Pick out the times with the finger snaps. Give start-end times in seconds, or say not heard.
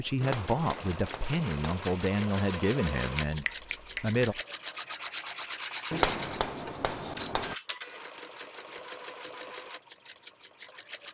3.1-4.4.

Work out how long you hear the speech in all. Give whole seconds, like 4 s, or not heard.
4 s.